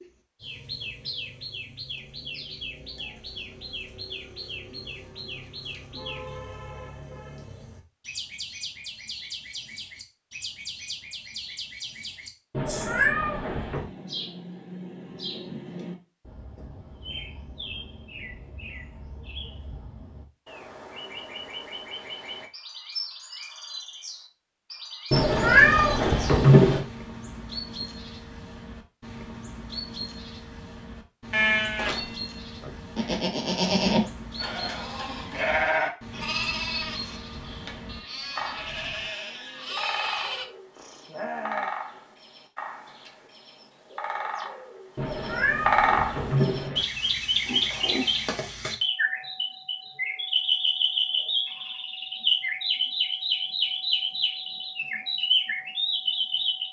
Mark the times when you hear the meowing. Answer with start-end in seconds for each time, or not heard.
12.5-13.9, 25.1-26.9, 45.0-46.9.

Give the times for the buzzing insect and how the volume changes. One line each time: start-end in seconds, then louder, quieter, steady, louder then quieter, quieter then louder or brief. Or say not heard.
not heard.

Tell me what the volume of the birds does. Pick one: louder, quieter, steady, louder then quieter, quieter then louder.
louder.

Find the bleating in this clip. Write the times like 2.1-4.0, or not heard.
31.3-41.8.